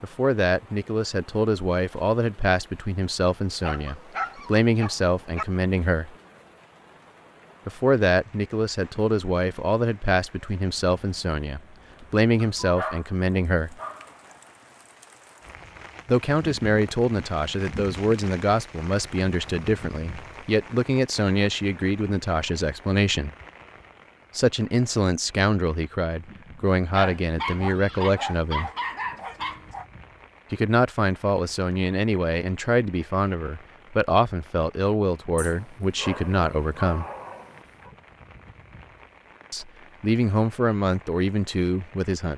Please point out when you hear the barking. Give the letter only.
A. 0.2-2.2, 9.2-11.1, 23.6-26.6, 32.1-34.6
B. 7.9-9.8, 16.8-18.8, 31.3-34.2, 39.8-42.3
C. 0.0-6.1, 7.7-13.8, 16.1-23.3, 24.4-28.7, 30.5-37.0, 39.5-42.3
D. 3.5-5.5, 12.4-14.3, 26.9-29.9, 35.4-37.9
D.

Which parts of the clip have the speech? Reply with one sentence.
You can hear the speech from 0.0 to 6.1 s, from 7.7 to 13.8 s, from 16.1 to 23.3 s, from 24.4 to 28.7 s, from 30.5 to 37.0 s and from 39.5 to 42.3 s.